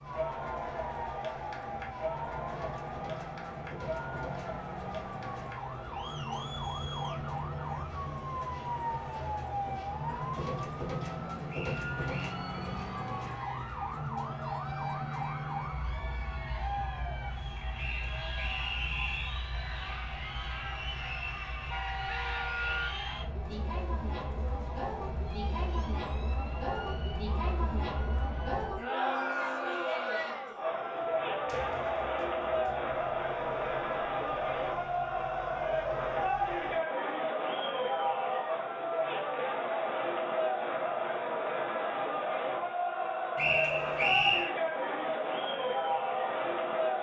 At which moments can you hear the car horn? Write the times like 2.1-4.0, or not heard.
21.7-23.0.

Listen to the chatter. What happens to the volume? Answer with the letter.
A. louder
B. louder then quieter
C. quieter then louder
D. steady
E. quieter
A.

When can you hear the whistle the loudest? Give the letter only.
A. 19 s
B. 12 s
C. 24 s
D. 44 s
D.